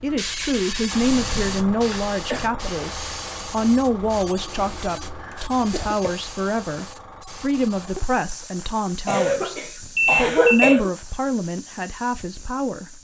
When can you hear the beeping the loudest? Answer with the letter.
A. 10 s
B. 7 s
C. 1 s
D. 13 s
A.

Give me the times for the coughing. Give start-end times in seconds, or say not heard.
1.7-2.5, 5.3-6.2, 9.1-10.9.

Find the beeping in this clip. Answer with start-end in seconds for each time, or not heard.
1.0-1.9, 9.9-10.7.